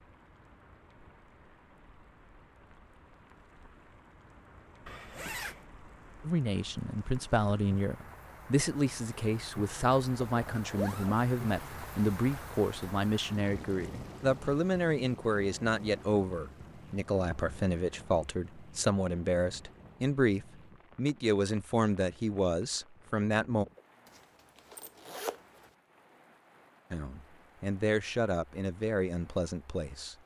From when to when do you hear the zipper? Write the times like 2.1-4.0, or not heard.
4.8-5.7, 10.2-11.2, 24.1-25.4.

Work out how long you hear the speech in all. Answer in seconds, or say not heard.
21 s.